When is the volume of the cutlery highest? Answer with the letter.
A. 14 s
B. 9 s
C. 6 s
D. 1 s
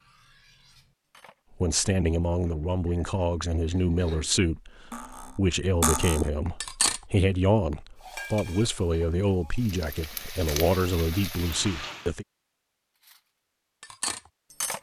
C.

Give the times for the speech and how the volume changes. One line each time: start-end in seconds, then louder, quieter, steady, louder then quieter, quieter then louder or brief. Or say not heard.
1.6-12.2 steady.